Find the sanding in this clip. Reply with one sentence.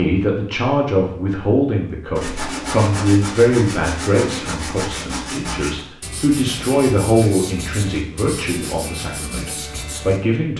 The sanding can be heard from 2.1 to 10.2 s.